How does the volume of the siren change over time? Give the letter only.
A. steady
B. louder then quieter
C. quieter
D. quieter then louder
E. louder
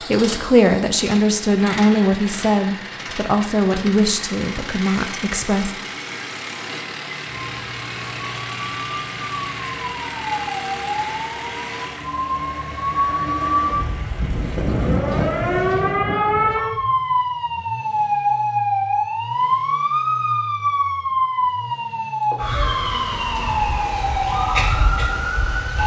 E.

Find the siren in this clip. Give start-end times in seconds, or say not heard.
7.2-25.8.